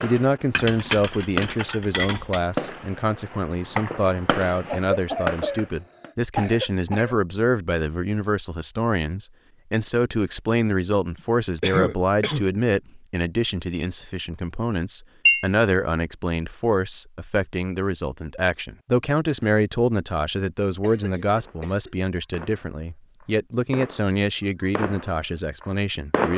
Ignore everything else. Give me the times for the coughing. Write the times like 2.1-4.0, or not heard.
4.7-7.2, 11.2-12.4, 20.8-22.2.